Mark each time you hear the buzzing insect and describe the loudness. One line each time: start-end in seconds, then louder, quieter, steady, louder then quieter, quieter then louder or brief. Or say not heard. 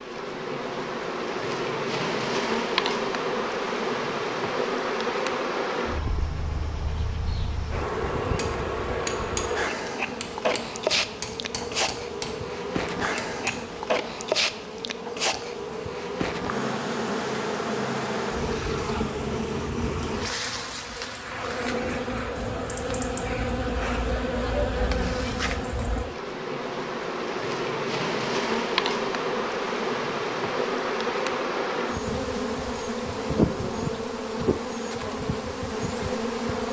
0.0-36.6 steady.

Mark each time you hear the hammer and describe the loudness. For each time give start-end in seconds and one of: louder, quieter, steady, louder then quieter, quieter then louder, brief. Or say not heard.
8.3-13.8 quieter.